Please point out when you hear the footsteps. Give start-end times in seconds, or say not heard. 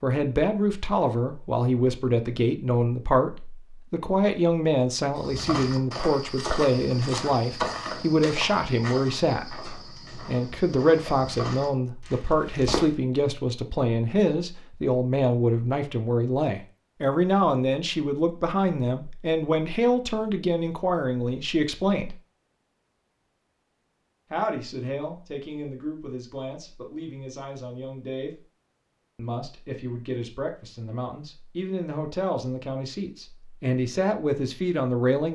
5.2-12.9.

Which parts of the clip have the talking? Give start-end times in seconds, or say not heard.
0.0-22.1, 24.3-28.4, 29.1-35.3.